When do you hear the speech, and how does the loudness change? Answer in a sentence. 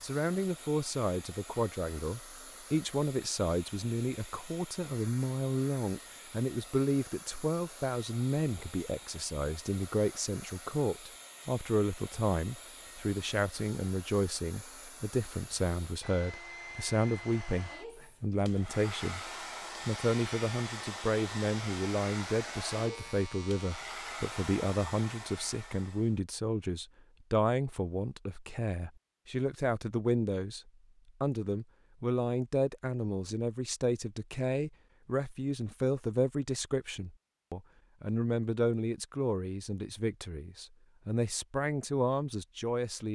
You can hear the speech from 0.0 to 19.2 s, at a steady volume; and from 19.9 to 43.1 s, at a steady volume.